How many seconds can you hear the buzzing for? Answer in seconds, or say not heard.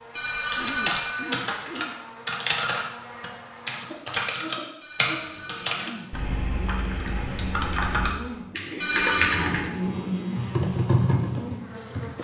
12 s.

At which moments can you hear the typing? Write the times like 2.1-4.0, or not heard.
0.5-12.1.